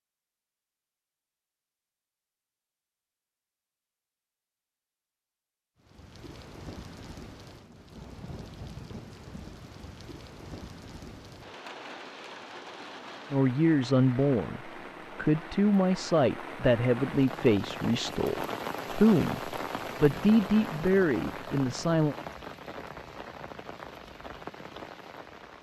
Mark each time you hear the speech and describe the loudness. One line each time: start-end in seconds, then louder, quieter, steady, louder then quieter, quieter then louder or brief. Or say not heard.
13.3-22.1 steady.